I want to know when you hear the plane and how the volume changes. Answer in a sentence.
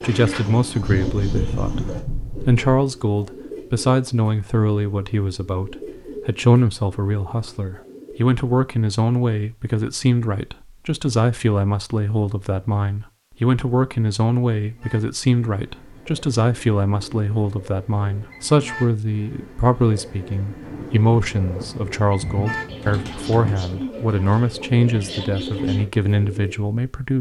You can't hear the plane here.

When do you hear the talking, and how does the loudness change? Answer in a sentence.
The talking can be heard from 0.0 to 27.1 s, at a steady volume.